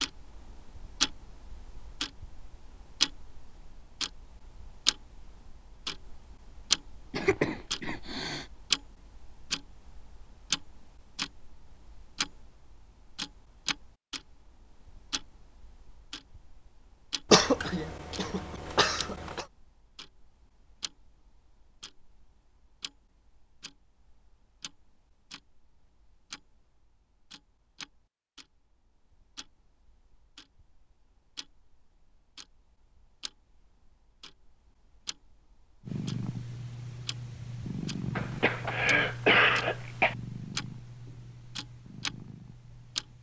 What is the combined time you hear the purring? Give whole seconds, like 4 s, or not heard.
7 s.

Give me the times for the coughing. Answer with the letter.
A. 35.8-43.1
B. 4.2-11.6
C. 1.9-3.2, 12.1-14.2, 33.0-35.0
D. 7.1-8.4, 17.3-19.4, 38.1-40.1
D.